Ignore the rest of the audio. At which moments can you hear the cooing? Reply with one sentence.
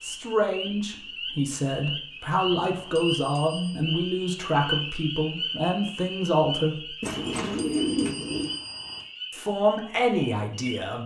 The cooing can be heard from 7.0 to 8.6 s.